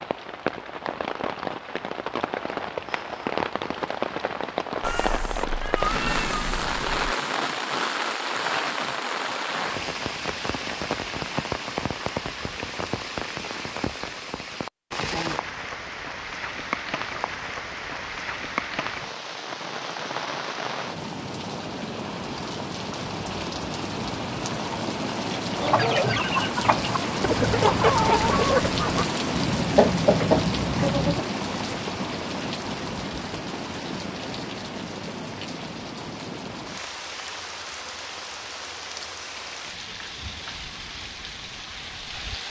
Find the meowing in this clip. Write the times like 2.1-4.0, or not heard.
4.8-6.9.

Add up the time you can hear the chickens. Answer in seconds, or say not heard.
6 s.